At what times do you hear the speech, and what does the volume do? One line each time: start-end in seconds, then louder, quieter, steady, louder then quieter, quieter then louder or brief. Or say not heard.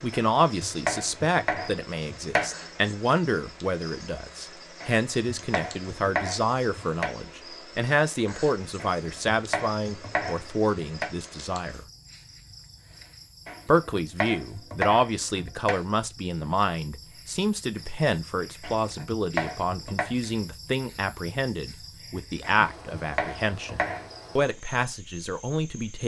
0.0-11.8 steady
13.7-26.0 steady.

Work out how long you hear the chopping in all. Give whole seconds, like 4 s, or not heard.
12 s.